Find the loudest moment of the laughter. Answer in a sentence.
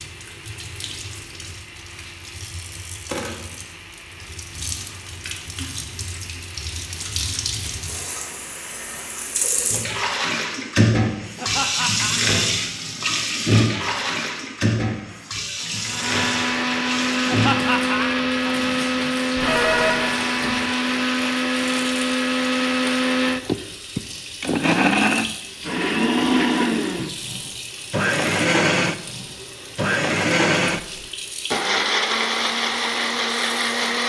The loudest moment of the laughter is at 18 seconds.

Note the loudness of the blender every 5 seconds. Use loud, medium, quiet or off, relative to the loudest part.
quiet, quiet, quiet, loud, loud, loud, loud.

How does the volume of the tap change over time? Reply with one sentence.
The volume of the tap goes up, then down.